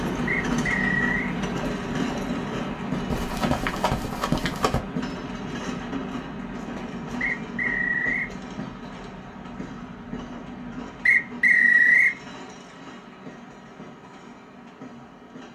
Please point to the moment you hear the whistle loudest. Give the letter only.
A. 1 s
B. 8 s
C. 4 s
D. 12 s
D.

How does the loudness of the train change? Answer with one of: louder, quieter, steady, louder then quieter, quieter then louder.
quieter.